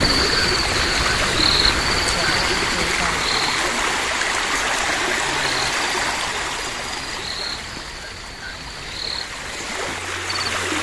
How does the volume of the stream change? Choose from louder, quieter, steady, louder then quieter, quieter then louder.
quieter.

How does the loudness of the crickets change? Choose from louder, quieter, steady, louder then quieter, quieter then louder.
quieter.